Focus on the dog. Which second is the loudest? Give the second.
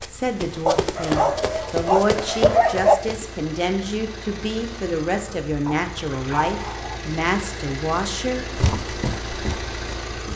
3 s.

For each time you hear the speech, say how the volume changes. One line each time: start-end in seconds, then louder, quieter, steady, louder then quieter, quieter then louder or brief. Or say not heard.
0.1-8.4 steady.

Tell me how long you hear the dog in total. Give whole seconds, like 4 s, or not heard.
4 s.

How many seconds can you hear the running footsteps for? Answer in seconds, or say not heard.
5 s.